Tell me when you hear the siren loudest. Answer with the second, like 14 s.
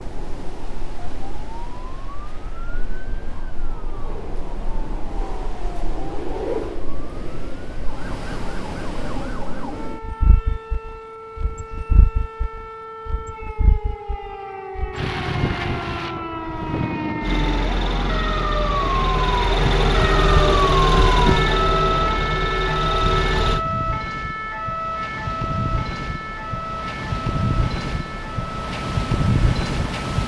21 s.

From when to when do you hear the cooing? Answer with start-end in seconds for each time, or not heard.
not heard.